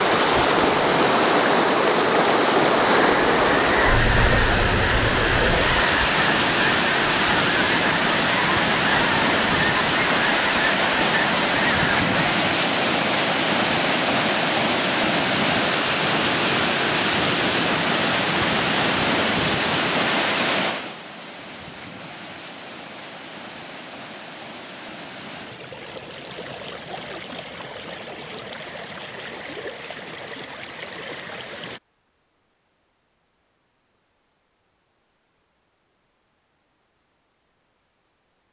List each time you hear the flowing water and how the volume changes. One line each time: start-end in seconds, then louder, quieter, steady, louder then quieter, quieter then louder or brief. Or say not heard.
0.0-31.8 quieter.